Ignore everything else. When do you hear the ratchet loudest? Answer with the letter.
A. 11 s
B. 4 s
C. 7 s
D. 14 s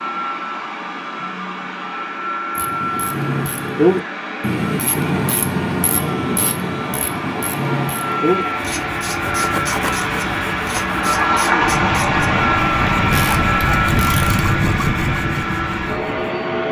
B.